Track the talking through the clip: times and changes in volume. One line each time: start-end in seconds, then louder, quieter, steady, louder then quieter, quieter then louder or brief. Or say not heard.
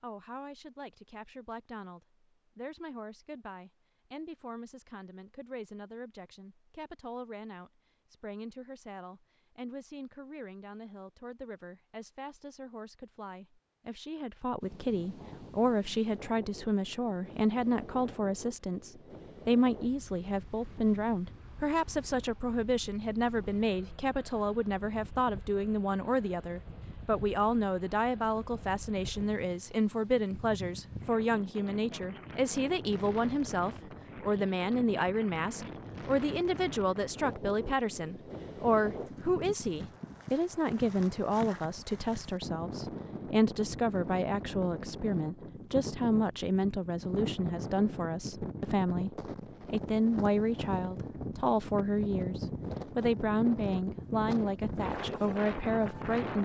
0.0-56.4 louder.